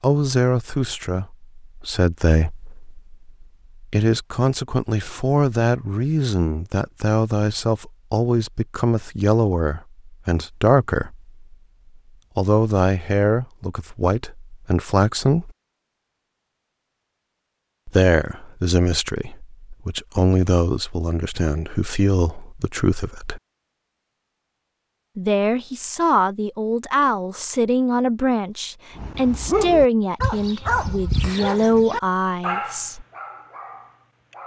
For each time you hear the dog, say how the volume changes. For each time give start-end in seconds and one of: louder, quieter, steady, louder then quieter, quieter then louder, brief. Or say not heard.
28.9-34.4 quieter.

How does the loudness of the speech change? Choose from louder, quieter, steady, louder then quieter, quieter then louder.
steady.